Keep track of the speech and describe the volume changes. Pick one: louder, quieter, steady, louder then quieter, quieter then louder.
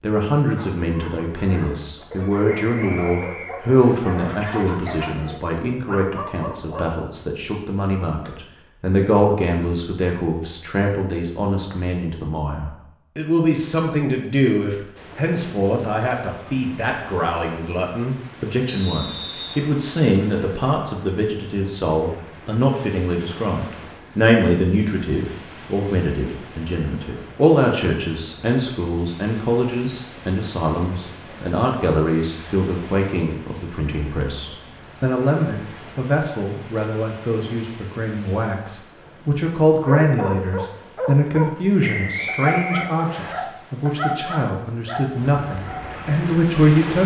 steady.